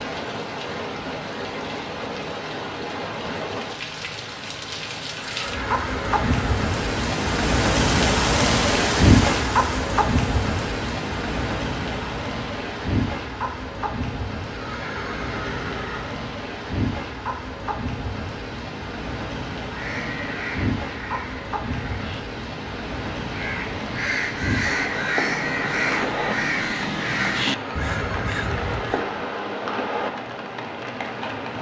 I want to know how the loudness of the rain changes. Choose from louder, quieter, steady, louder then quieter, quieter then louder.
louder then quieter.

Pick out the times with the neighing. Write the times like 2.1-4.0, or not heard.
5.3-6.7, 14.5-16.2, 27.5-29.1.